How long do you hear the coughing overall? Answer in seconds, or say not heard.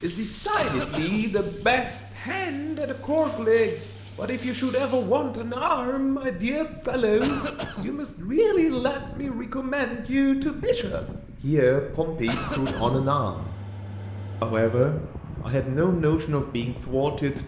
2 s.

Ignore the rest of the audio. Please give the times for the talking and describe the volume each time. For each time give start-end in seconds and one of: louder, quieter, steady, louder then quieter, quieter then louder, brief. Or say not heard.
0.0-13.5 steady
14.4-17.4 brief.